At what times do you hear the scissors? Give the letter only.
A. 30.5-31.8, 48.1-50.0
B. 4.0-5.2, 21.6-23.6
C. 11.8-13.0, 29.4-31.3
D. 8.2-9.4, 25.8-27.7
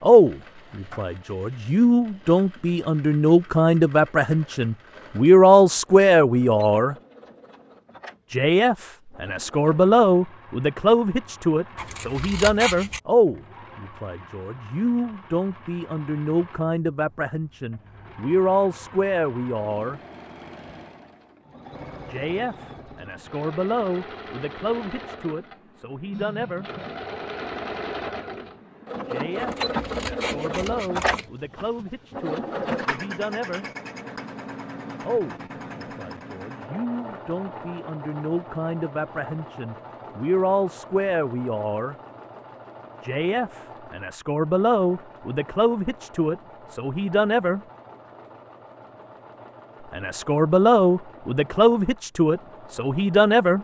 C.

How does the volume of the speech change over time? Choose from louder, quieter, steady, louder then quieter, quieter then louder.
quieter then louder.